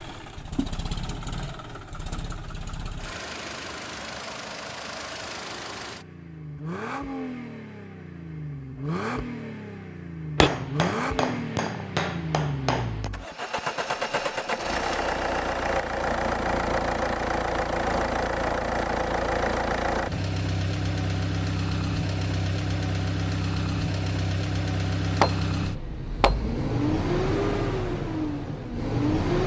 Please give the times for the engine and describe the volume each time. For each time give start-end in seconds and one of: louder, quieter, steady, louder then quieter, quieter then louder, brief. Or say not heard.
0.0-29.4 louder.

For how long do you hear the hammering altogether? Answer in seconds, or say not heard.
4 s.